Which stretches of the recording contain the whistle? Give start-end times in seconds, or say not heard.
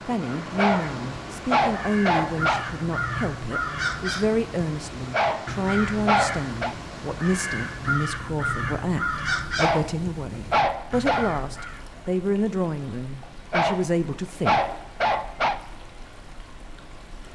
not heard.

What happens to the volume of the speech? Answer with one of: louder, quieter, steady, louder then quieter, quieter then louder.
steady.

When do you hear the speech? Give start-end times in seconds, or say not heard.
0.1-14.6.